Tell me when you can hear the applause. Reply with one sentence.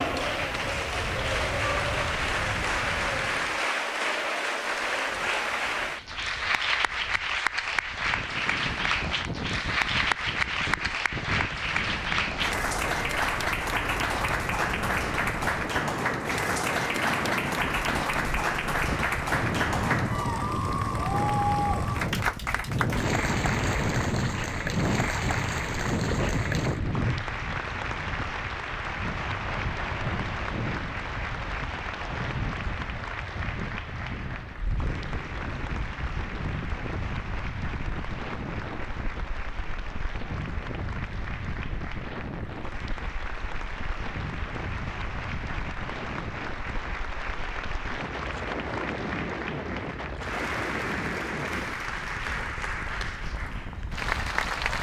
You can hear the applause from 0.0 to 54.7 s.